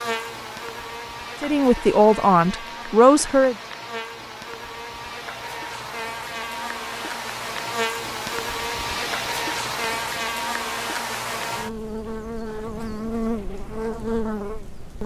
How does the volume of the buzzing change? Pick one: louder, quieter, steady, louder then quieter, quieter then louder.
louder.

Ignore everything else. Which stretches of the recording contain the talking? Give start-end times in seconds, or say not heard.
1.4-3.5.